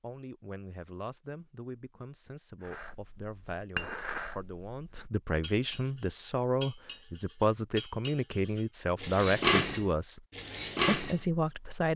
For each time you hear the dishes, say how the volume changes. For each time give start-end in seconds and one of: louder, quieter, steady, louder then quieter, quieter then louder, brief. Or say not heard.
2.6-11.2 louder.